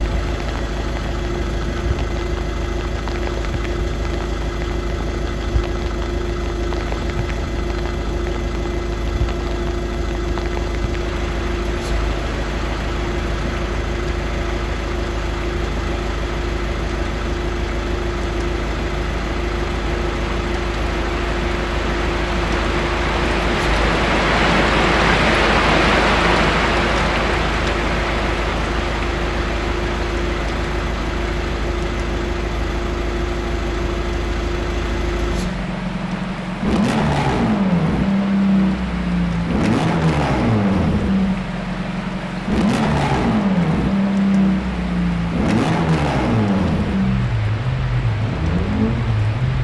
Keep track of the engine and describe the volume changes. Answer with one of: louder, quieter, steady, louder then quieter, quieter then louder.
louder.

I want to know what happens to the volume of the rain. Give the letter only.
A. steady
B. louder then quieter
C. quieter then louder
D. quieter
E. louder
B.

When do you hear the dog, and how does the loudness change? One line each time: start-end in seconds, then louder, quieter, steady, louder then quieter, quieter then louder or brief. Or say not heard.
not heard.